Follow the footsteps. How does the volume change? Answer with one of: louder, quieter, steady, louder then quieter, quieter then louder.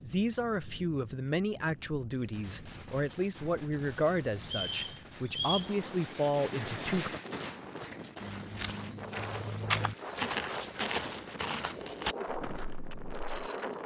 louder then quieter.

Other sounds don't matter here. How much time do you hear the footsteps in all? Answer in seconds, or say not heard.
5 s.